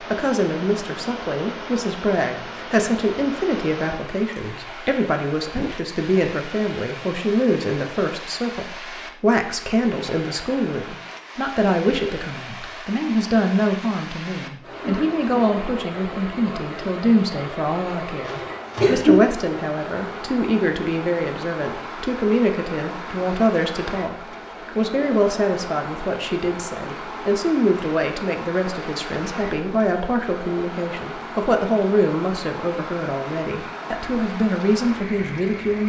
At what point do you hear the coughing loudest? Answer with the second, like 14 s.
19 s.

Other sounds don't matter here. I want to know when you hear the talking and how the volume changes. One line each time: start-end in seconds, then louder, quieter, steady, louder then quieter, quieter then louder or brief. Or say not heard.
0.1-35.8 steady.